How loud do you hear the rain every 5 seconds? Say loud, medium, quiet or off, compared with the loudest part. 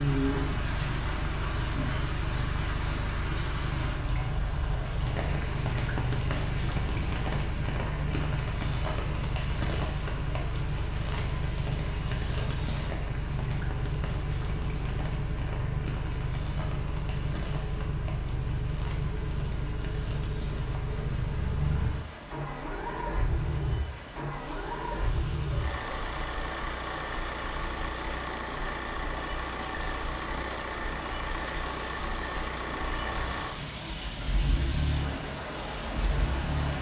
loud, loud, medium, medium, medium, medium, medium, loud.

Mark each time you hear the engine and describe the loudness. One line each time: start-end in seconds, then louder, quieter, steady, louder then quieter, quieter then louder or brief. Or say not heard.
0.2-36.7 steady.